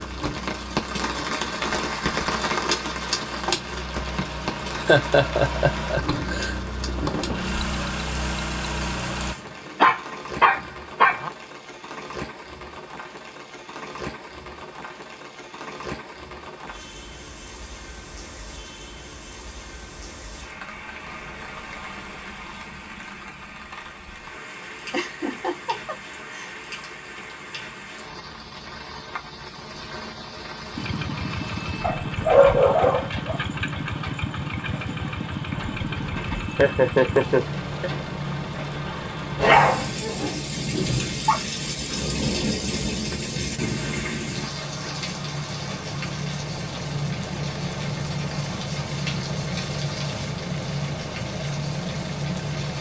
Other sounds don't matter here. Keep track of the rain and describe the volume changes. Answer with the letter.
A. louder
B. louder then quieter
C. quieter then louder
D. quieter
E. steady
C.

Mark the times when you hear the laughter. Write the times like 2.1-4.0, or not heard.
4.2-6.5, 24.9-26.6, 36.5-37.9.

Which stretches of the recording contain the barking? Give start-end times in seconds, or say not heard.
9.8-11.3, 31.8-33.4, 39.4-41.4.